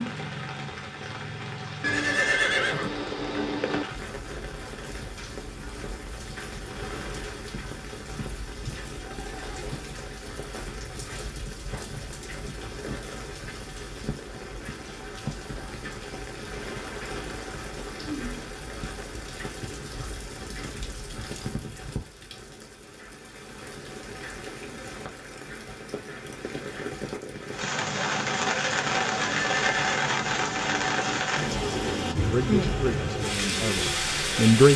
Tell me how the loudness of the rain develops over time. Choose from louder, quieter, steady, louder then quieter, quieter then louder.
louder.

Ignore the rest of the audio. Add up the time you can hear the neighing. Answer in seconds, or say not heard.
4 s.